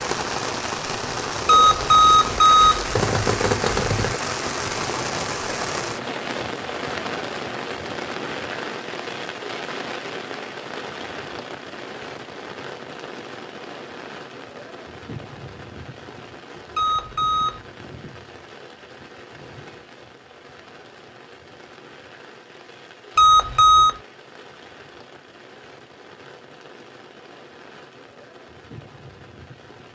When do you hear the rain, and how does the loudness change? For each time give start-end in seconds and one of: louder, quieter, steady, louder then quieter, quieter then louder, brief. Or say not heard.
0.0-29.8 quieter.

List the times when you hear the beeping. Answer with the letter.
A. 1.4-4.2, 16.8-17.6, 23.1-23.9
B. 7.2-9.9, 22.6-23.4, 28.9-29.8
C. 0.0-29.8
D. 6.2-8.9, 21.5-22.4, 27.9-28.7
A.